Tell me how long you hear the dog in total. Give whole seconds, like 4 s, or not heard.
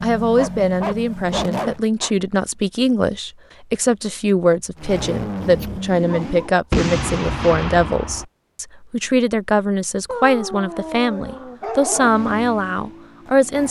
5 s.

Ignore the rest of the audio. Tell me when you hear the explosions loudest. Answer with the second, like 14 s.
7 s.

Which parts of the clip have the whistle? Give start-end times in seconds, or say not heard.
not heard.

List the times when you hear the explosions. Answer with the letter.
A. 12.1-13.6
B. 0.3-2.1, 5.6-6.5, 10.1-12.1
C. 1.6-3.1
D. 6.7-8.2
D.